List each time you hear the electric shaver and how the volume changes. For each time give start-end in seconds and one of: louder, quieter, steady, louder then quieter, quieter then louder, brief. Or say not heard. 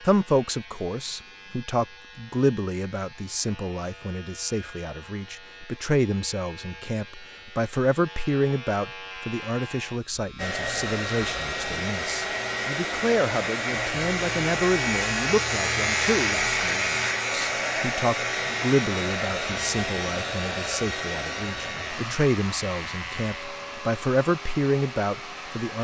0.0-25.8 louder then quieter.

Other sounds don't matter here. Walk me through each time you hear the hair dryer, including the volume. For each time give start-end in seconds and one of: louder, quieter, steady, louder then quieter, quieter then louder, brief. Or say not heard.
10.3-25.8 quieter.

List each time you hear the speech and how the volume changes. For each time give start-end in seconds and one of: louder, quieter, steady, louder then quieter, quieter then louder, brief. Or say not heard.
0.0-25.8 steady.